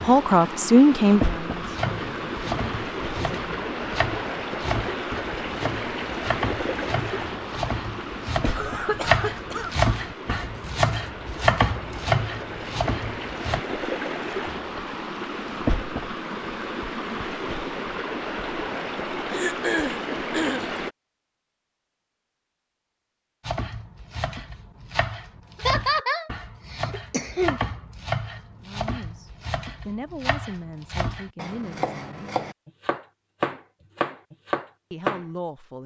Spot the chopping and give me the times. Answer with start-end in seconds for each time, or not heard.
1.6-13.6, 23.4-35.2.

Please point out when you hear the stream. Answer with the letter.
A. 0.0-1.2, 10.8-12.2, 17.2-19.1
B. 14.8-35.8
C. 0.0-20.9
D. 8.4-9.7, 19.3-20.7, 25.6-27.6
C.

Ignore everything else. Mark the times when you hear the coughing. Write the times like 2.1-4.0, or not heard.
8.4-9.7, 19.3-20.7, 25.6-27.6.